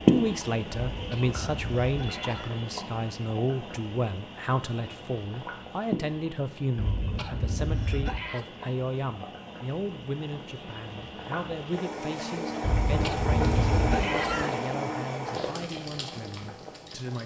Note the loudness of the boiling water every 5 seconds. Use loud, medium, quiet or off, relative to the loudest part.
loud, medium, loud, medium.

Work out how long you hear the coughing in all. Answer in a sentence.
You can hear the coughing for 5 seconds altogether.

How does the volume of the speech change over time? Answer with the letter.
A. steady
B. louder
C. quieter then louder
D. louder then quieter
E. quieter
E.